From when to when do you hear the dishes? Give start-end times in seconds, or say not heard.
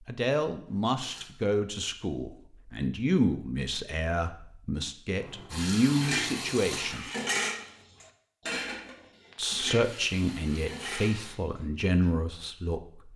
5.8-12.1.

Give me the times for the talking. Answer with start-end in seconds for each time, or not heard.
0.1-7.1, 9.3-13.1.